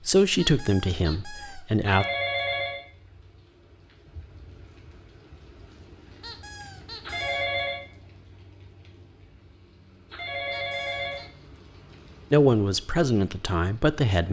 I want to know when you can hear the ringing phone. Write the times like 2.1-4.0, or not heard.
1.8-2.8, 7.0-7.8, 10.1-11.2.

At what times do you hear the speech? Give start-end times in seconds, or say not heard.
0.1-2.0, 12.3-14.2.